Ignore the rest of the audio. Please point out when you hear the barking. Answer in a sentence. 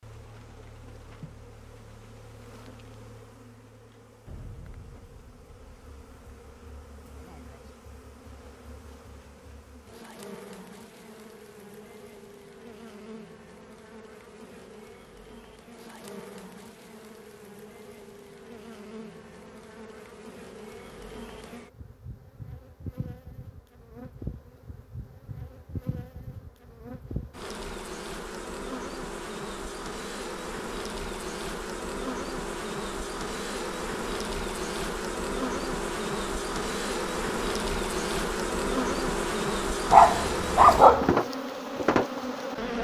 The barking can be heard from 39.9 to 41.1 s.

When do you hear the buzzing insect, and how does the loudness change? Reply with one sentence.
The buzzing insect can be heard from 0.0 to 42.7 s, getting louder.